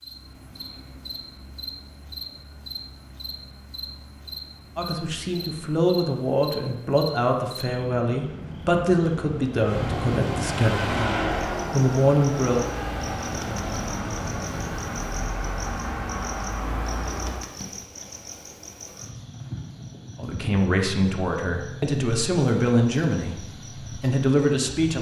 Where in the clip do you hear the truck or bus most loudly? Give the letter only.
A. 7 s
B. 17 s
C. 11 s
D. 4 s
C.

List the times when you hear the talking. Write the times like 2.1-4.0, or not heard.
4.8-12.6, 20.1-24.9.